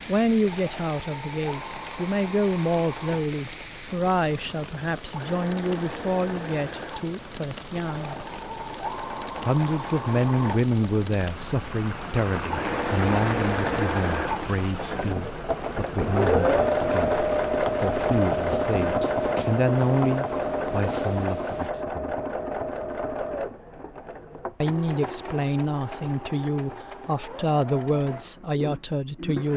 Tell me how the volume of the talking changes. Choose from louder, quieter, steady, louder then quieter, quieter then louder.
steady.